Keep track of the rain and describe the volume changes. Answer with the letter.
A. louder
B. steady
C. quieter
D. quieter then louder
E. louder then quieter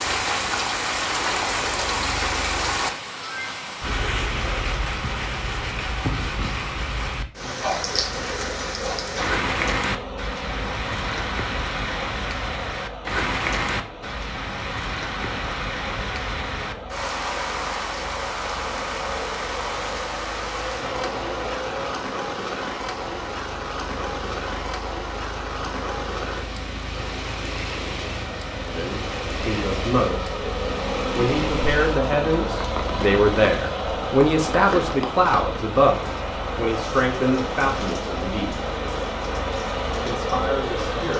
C.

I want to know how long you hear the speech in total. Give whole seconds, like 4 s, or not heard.
10 s.